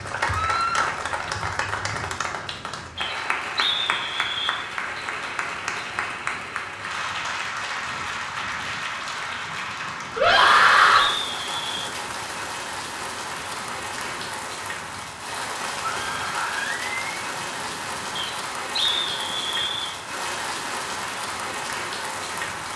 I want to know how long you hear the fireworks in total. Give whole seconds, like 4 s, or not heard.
not heard.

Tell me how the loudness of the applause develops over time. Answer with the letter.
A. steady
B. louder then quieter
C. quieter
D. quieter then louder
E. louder
A.